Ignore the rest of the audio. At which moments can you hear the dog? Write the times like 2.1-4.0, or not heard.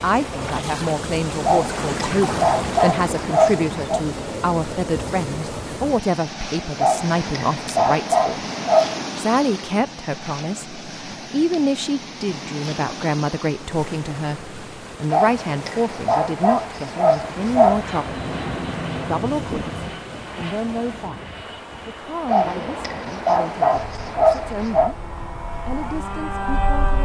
1.4-4.0, 6.8-9.1, 15.1-17.9, 22.2-24.9.